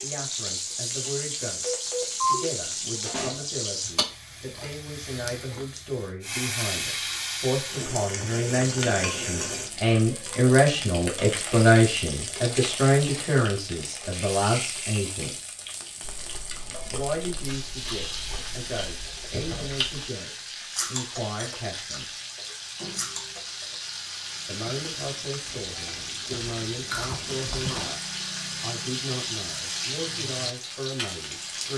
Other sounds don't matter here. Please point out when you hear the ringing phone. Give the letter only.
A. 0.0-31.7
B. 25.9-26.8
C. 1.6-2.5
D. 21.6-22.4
C.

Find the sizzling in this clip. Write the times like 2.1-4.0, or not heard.
0.0-31.7.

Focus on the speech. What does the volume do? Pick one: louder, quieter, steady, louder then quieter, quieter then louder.
louder then quieter.